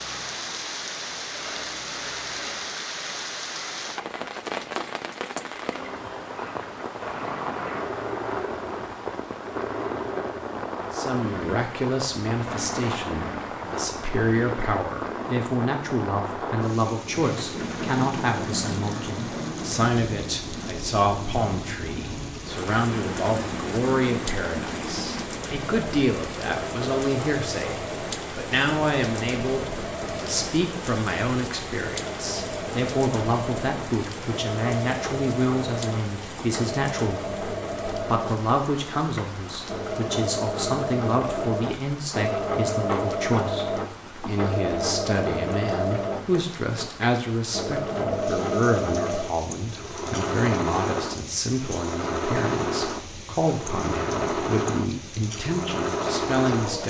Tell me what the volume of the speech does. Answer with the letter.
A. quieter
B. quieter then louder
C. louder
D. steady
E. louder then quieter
D.